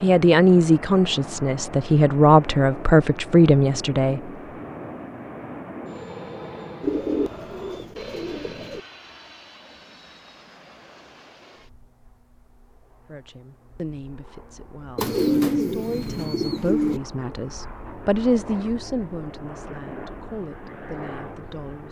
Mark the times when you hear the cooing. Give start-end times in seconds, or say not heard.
6.8-8.8, 14.9-17.0.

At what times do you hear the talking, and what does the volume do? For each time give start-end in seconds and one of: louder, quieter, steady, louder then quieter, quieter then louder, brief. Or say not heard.
0.0-4.2 quieter then louder
13.1-21.8 louder then quieter.